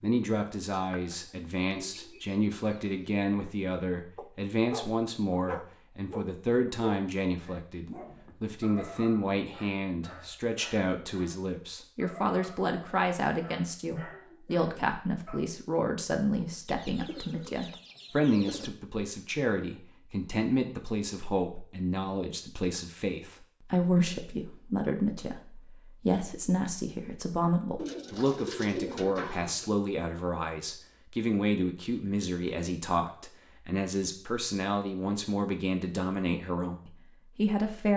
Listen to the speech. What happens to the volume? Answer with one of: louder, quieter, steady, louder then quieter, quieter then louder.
steady.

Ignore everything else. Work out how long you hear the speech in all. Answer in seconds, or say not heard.
38 s.